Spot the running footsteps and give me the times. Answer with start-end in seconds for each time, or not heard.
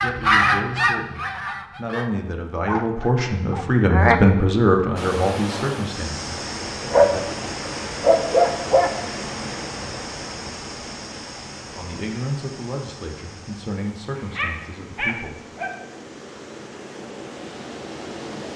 not heard.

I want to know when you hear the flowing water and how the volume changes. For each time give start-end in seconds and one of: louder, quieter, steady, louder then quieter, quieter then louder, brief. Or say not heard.
5.0-18.5 quieter then louder.